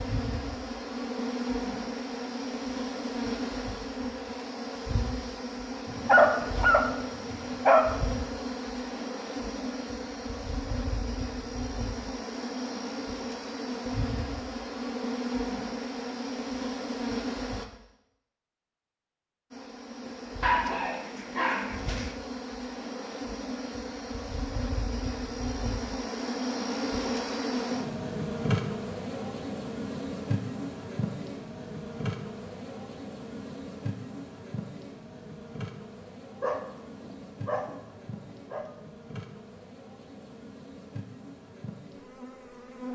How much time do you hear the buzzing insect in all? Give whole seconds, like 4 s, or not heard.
41 s.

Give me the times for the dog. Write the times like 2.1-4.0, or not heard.
5.9-7.8, 20.4-22.1, 36.4-38.7.